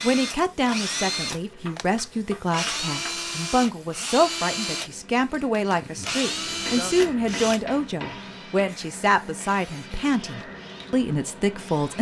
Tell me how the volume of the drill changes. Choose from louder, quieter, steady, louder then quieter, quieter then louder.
quieter.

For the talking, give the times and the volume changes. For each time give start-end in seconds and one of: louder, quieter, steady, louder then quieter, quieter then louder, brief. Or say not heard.
0.0-11.9 steady.